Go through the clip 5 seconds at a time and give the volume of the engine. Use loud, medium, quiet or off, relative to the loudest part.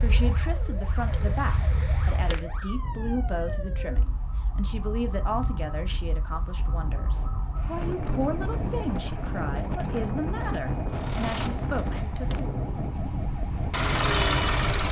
medium, off, loud.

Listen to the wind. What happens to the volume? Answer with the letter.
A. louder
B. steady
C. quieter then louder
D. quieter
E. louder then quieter
A.